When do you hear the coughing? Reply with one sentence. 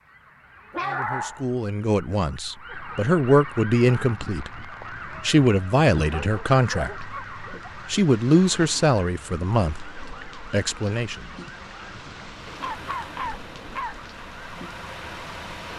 The coughing can't be heard in this clip.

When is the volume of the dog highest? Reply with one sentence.
The loudest moment of the dog is at 1 second.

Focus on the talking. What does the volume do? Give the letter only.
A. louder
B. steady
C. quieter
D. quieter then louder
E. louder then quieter
E.